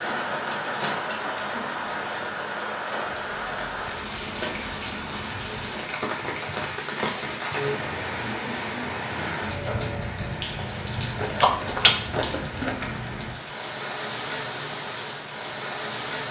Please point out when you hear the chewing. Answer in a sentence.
You can hear the chewing from 3.3 to 4.7 s and from 11.2 to 12.9 s.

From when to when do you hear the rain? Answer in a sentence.
You can hear the rain from 0.0 to 16.2 s.